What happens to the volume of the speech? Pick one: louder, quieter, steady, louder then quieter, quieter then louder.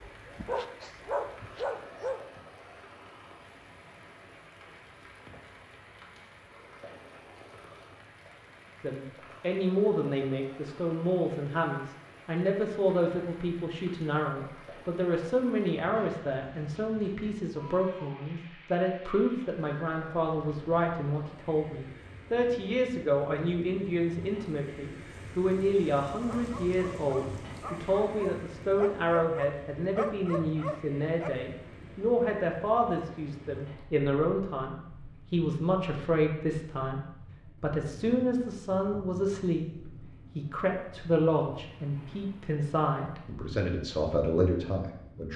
steady.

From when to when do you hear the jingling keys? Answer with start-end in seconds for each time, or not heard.
not heard.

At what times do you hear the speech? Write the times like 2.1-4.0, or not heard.
8.8-45.3.